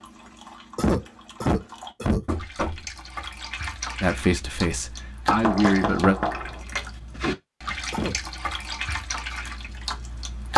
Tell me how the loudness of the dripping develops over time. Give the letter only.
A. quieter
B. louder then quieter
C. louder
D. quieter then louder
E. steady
C.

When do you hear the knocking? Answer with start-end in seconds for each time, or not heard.
2.2-2.9, 5.3-6.6.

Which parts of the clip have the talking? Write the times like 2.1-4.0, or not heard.
4.0-6.2.